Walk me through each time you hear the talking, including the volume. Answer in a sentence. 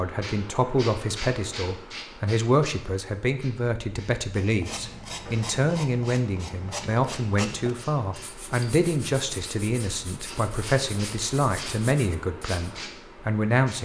The talking can be heard from 0.0 to 13.7 s, at a steady volume.